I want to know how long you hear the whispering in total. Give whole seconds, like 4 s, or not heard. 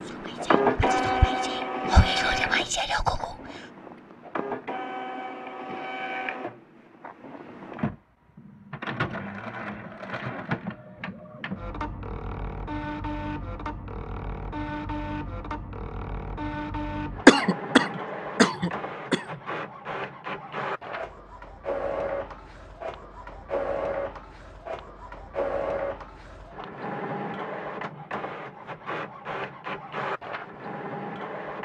3 s.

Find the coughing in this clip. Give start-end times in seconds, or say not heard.
17.2-19.4.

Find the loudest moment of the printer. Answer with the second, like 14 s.
1 s.